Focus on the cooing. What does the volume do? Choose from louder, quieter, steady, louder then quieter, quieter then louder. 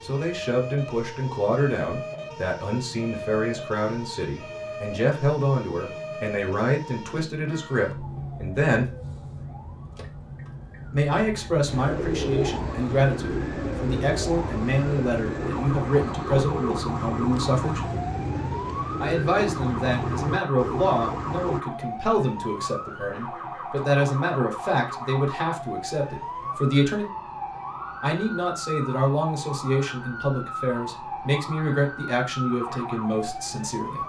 steady.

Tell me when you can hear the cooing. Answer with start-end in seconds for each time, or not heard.
11.7-21.6.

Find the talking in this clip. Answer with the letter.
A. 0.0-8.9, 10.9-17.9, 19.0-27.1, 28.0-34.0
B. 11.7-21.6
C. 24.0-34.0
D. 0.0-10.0
A.